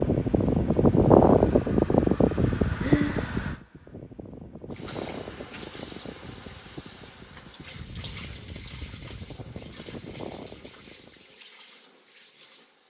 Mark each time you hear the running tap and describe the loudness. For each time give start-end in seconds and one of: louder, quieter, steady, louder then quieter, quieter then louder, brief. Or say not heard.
4.7-12.8 quieter.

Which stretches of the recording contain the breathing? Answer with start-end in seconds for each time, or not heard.
2.8-3.3.